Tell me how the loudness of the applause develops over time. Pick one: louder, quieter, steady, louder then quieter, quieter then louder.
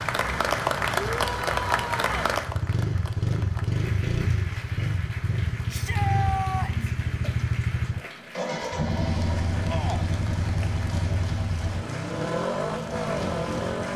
quieter.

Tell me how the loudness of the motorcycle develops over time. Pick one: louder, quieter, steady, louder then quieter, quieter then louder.
steady.